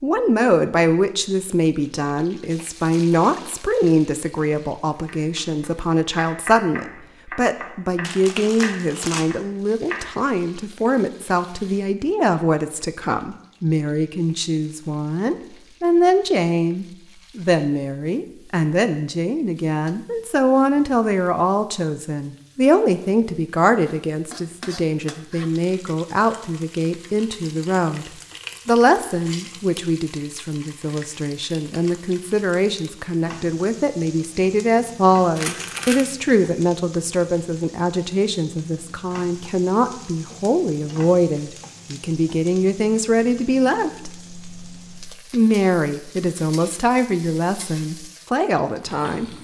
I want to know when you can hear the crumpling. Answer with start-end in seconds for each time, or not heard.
8.0-9.2, 35.4-36.1.